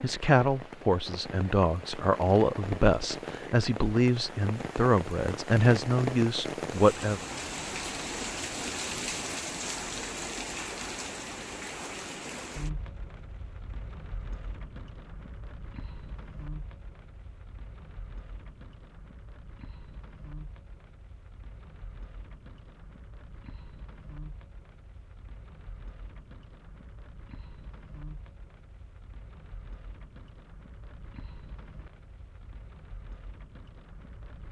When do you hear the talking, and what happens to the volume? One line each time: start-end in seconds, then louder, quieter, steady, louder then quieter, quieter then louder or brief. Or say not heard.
0.0-7.2 steady.